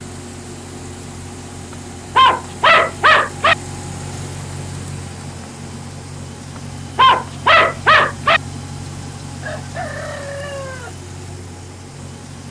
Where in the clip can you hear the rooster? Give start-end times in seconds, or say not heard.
9.4-10.9.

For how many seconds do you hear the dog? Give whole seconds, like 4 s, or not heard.
3 s.